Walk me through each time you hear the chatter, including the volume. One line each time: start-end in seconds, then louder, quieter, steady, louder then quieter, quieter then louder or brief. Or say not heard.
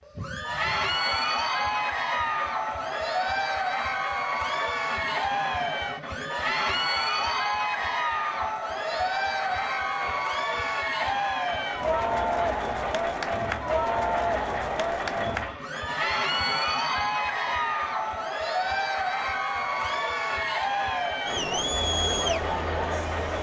0.1-23.3 steady.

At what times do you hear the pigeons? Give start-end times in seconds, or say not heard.
not heard.